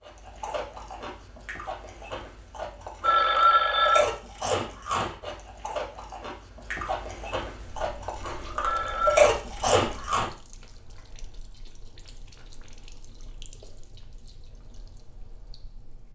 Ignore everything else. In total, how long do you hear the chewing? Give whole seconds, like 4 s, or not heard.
10 s.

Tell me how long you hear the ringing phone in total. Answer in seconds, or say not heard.
2 s.